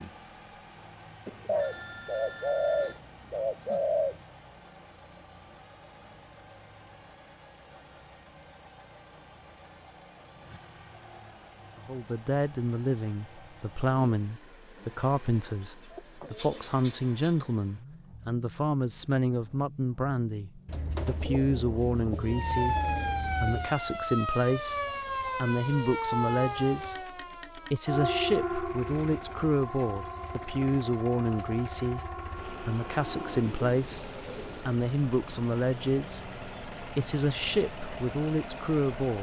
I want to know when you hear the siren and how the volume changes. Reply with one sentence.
The siren can be heard from 22.2 to 33.5 s, getting quieter.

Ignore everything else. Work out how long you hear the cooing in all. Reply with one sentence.
You can hear the cooing for 9 seconds altogether.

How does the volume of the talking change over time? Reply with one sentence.
The volume of the talking stays about the same.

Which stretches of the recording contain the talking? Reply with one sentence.
You can hear the talking from 11.8 to 39.1 s.